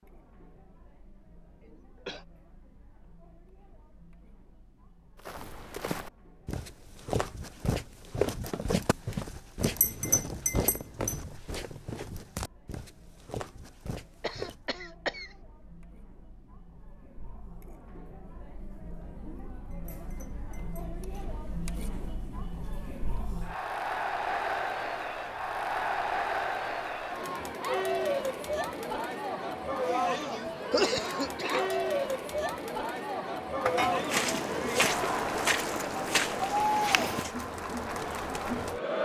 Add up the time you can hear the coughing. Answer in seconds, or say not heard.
4 s.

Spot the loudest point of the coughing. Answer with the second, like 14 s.
31 s.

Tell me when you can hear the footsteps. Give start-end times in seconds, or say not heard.
5.2-14.7, 33.7-37.4.